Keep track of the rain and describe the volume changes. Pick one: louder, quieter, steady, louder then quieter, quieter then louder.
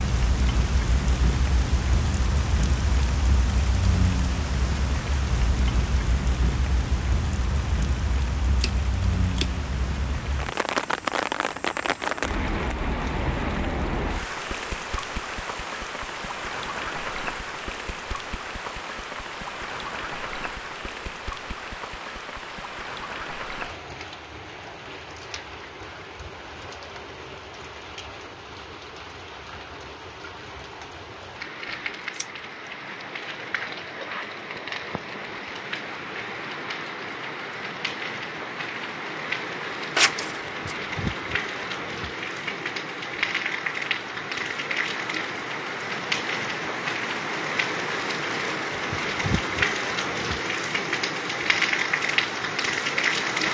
quieter then louder.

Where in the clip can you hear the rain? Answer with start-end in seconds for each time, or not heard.
0.0-53.4.